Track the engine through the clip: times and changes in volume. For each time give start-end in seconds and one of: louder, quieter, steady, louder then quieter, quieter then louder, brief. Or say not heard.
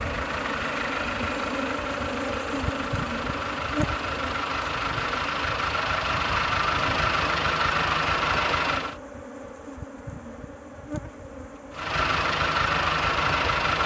0.0-9.0 louder
11.7-13.8 brief.